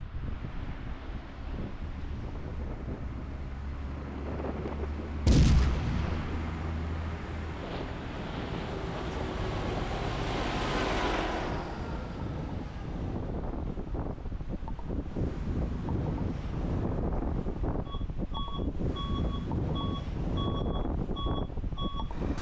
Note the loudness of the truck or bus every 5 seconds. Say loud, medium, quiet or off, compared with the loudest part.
medium, loud, loud, medium, medium.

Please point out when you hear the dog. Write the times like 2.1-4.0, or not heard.
not heard.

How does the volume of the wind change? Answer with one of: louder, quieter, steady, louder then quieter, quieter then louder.
louder.